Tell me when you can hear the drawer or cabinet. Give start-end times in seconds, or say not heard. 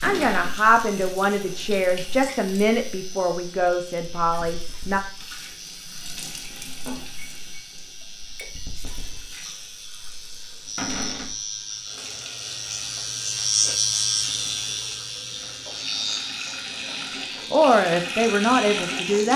0.0-0.6, 10.8-11.3, 14.2-14.8.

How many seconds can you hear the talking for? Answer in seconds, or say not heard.
7 s.